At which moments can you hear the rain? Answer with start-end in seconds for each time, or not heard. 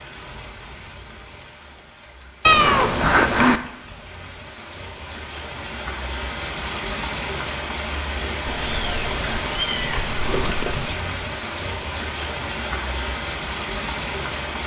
0.0-14.6.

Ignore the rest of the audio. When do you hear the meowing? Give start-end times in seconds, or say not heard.
2.5-3.6, 8.4-11.0.